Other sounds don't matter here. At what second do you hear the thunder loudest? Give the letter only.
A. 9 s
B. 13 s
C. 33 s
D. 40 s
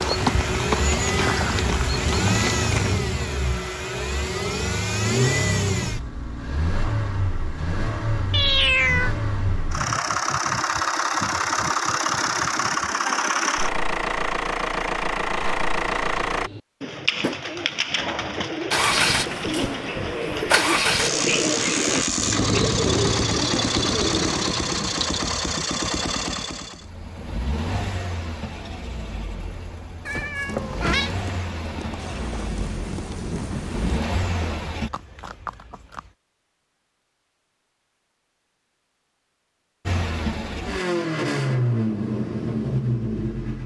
C.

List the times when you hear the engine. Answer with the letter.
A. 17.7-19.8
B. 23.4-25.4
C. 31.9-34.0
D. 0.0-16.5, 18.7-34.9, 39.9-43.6
D.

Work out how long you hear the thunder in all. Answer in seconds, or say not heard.
2 s.